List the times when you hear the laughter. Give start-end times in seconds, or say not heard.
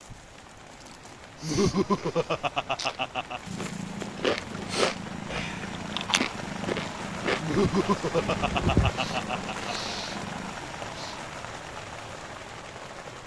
1.4-3.4, 7.4-9.7.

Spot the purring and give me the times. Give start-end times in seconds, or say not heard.
3.5-10.6.